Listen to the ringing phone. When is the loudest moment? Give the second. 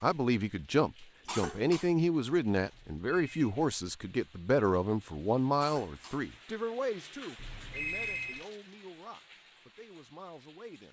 8 s.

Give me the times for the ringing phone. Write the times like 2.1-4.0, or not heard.
2.7-3.5, 7.3-8.4.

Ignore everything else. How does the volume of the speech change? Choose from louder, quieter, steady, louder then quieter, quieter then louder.
quieter.